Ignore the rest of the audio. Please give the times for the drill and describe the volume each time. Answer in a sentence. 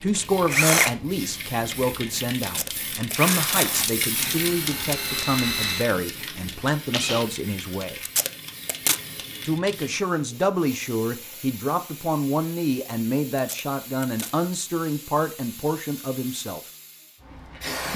You can hear the drill from 0.1 to 7.2 s, getting quieter then louder.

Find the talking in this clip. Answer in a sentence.
You can hear the talking from 0.0 to 8.0 s and from 9.4 to 16.6 s.